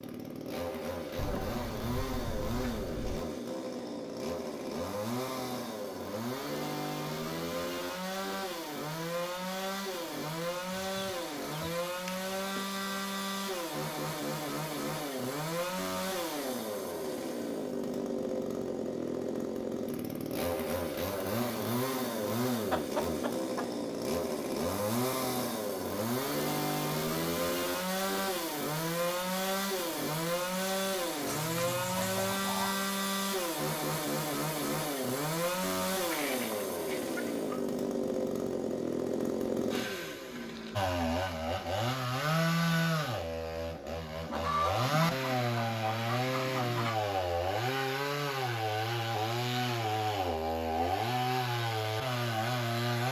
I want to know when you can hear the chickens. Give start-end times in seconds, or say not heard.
1.1-3.2, 10.8-12.7, 22.7-23.6, 31.2-32.8, 36.1-37.6, 44.2-47.0.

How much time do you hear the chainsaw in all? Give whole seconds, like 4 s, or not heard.
53 s.